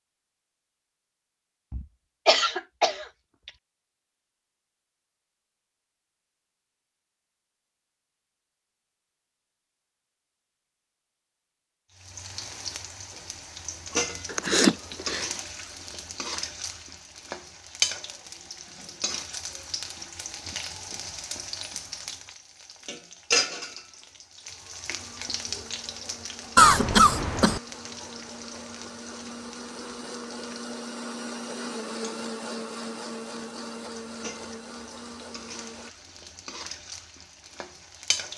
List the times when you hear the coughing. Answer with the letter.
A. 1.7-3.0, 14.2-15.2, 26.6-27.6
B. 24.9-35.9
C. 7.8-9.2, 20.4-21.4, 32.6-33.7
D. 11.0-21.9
A.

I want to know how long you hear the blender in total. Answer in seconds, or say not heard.
11 s.